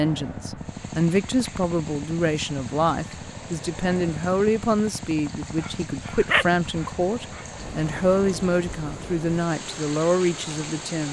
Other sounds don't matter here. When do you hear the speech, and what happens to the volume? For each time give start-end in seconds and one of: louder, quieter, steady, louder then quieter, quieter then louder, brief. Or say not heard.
0.0-11.0 steady.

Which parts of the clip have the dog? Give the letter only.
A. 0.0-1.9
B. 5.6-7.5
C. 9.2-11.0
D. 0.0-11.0
B.